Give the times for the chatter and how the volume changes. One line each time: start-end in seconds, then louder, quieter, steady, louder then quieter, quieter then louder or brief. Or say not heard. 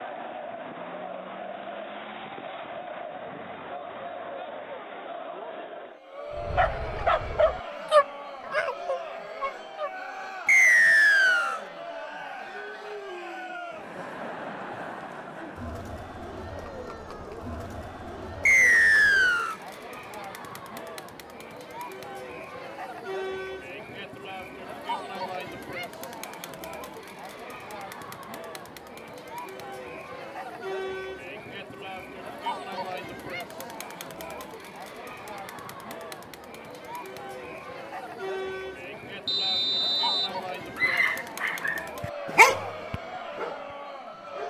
0.0-44.4 steady.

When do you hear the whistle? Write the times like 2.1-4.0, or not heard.
10.4-11.6, 18.4-19.6, 39.2-40.3.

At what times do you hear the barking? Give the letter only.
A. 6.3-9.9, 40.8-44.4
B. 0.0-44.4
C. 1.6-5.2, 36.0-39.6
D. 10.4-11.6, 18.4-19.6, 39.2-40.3
A.